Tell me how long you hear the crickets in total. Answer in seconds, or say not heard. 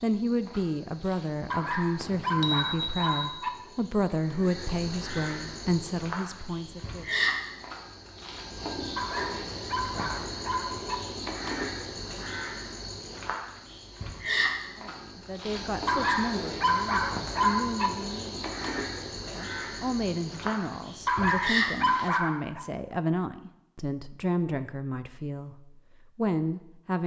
22 s.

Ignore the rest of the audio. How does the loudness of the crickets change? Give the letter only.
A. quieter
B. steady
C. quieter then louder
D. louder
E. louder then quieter
D.